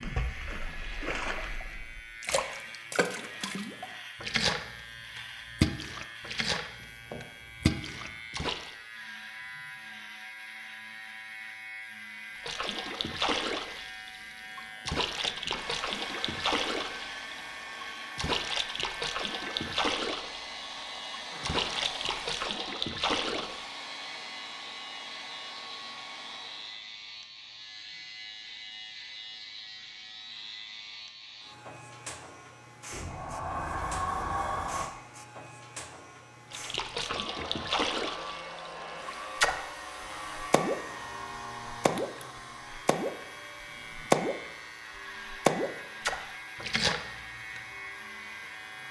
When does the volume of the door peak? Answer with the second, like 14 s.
34 s.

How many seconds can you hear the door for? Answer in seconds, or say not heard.
4 s.